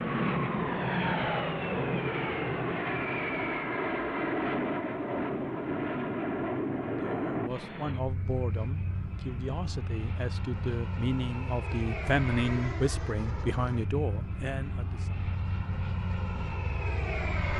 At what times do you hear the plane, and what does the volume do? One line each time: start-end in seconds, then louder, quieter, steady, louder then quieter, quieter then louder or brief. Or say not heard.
0.0-17.5 quieter.